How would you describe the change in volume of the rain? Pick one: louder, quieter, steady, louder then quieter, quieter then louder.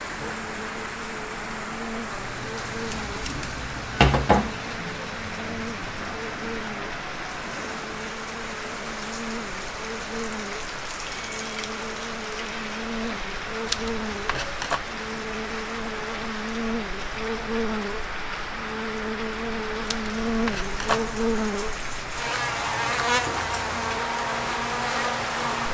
steady.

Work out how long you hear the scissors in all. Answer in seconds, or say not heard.
4 s.